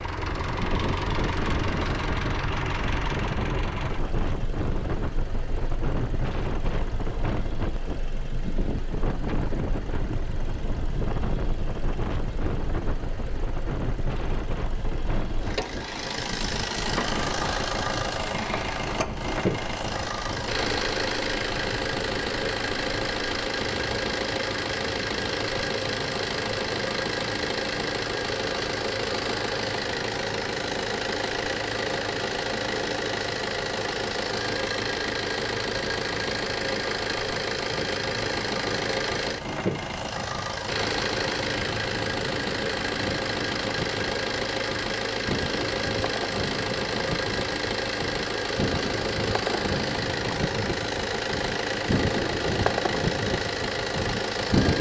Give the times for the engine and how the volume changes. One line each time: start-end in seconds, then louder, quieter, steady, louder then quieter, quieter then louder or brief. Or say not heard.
0.0-54.7 louder.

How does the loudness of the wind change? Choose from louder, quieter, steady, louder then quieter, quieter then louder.
quieter then louder.